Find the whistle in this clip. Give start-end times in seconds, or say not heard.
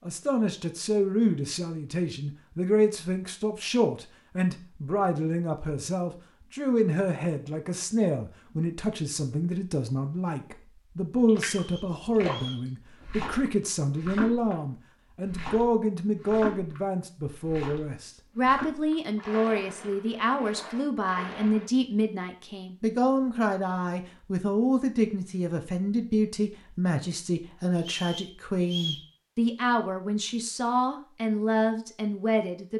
11.5-12.7, 27.8-29.1.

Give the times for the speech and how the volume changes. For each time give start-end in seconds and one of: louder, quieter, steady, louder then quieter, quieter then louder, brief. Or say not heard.
0.0-32.7 steady.